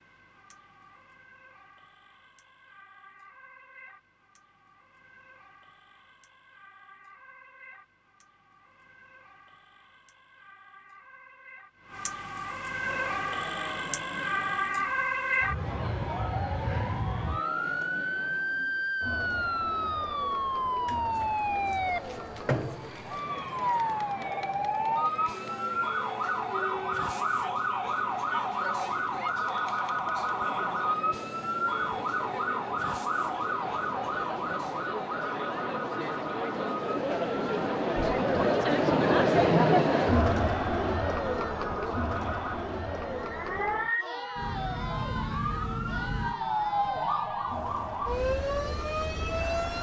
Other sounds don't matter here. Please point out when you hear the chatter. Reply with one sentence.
You can hear the chatter from 12.8 to 49.7 s.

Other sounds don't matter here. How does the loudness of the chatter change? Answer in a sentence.
The loudness of the chatter goes up, then down.